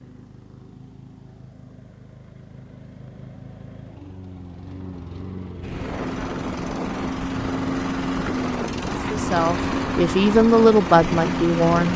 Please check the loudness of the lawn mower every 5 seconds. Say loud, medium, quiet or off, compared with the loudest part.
quiet, loud, loud.